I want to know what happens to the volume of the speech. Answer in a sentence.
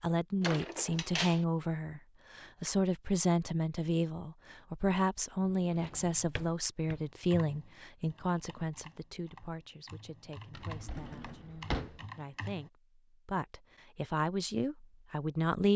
The volume of the speech goes down, then up.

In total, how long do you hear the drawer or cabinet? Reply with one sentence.
You can hear the drawer or cabinet for 4 seconds altogether.